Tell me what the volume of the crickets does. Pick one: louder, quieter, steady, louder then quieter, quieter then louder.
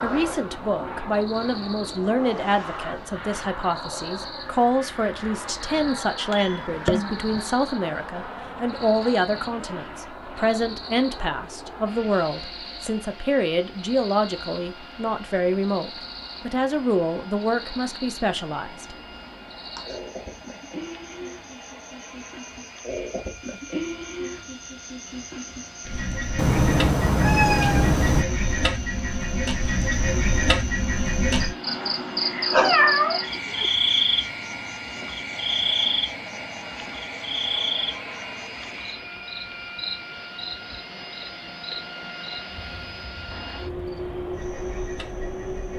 louder then quieter.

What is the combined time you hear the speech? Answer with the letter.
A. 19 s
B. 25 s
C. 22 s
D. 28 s
A.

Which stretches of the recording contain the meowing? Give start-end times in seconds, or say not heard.
6.3-7.4, 26.4-28.2, 32.5-33.7.